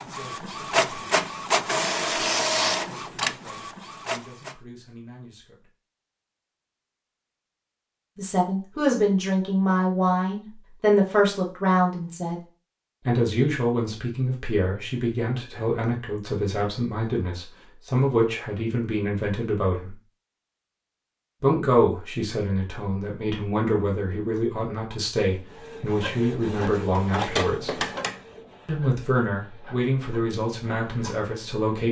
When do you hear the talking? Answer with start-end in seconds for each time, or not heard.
0.0-5.7, 8.2-12.4, 13.1-19.9, 21.4-27.8, 28.6-31.8.